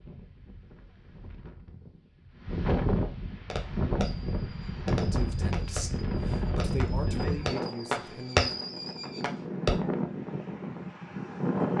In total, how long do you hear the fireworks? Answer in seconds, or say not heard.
6 s.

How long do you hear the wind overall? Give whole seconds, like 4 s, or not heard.
12 s.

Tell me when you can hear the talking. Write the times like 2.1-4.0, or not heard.
4.9-8.6.